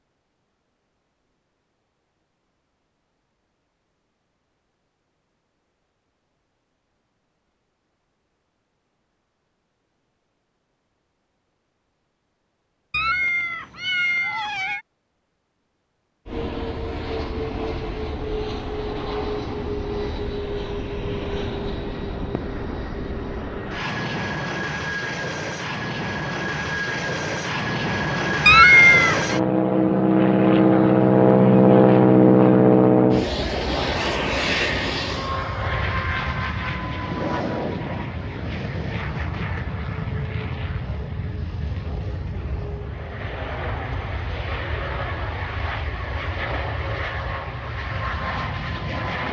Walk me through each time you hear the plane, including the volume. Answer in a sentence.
The plane can be heard from 16.2 to 49.2 s, getting louder then quieter.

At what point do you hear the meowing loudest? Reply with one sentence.
The loudest moment of the meowing is at 29 seconds.